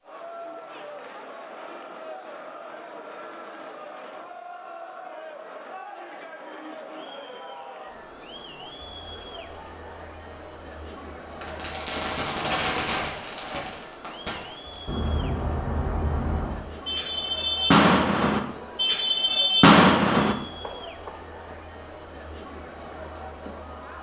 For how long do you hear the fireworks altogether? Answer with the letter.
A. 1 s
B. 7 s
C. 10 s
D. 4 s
C.